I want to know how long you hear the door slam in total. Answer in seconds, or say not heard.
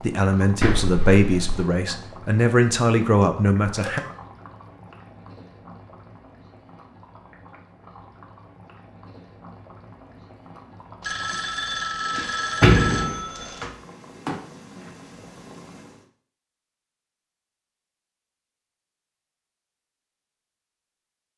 2 s.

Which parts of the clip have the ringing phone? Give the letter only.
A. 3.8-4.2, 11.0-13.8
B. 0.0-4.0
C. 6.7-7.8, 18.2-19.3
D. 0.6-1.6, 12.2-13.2
A.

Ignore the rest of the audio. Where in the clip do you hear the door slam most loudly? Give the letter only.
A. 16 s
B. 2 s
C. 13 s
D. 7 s
C.